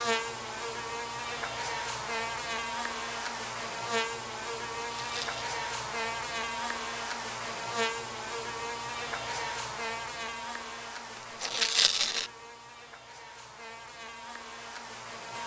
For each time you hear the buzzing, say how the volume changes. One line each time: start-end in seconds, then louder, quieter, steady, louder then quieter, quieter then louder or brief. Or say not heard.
0.0-15.4 quieter.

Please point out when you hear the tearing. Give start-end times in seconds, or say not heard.
5.0-5.5, 11.4-12.3.